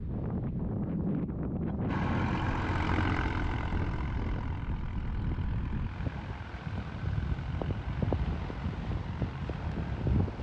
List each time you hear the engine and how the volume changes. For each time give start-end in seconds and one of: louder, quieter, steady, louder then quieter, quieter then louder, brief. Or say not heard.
1.9-10.3 quieter.